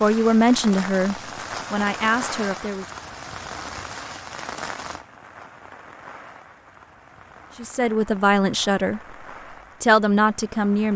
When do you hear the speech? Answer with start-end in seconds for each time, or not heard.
0.0-2.9, 7.5-9.0, 9.8-10.9.